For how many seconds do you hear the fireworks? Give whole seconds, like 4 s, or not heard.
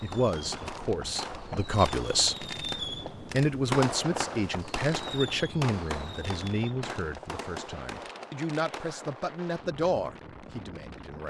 9 s.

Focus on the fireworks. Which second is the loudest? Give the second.
4 s.